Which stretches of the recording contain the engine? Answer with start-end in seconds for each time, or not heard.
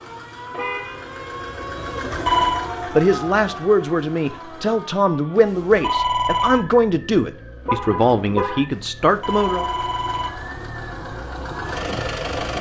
0.0-5.0, 9.2-12.5.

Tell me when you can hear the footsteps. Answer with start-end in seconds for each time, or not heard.
not heard.